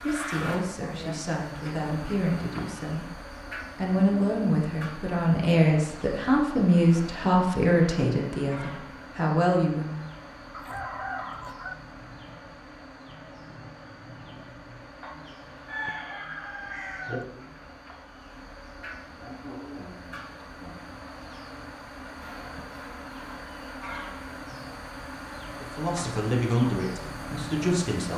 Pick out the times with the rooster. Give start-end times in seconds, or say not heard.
10.5-11.8, 15.7-17.2.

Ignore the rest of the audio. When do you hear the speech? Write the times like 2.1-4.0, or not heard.
0.0-10.1, 25.6-28.1.